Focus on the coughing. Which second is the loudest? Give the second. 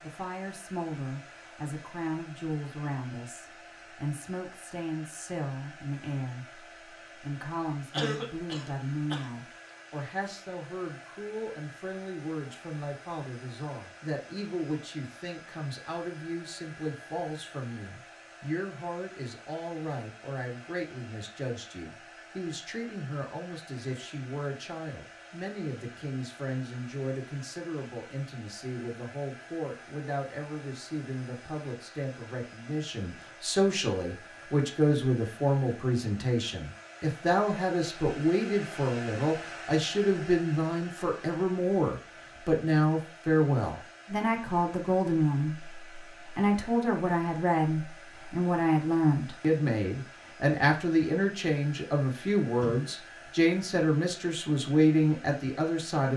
8 s.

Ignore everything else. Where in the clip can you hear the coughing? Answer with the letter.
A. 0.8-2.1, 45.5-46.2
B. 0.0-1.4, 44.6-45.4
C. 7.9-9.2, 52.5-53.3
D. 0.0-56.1
C.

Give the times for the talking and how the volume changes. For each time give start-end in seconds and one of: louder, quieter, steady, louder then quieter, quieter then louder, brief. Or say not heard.
0.0-56.1 louder.